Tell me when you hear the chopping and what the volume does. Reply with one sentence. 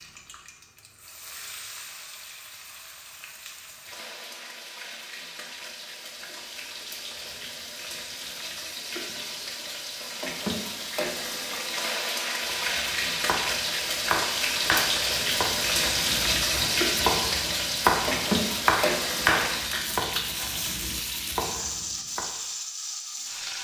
You can hear the chopping from 12.4 to 22.2 s, getting louder then quieter.